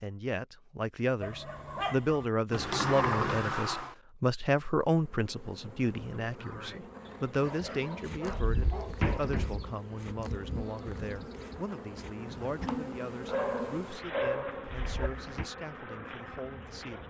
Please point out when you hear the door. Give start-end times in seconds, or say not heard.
2.5-4.0, 8.4-9.8, 14.7-15.5.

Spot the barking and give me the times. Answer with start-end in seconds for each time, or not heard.
1.2-2.2, 7.2-9.7, 13.2-15.1.